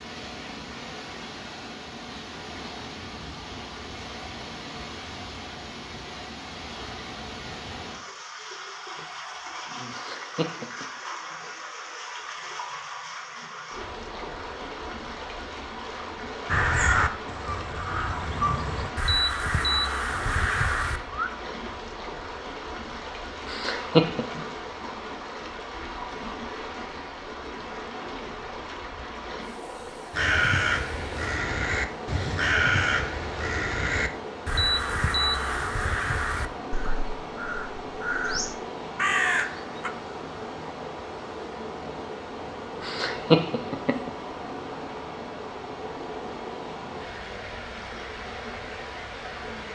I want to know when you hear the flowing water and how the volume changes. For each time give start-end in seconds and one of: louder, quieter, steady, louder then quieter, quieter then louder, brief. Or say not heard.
0.0-49.7 steady.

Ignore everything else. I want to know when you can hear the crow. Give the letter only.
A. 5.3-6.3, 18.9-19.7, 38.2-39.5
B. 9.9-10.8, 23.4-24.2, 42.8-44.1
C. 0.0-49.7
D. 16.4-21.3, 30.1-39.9
D.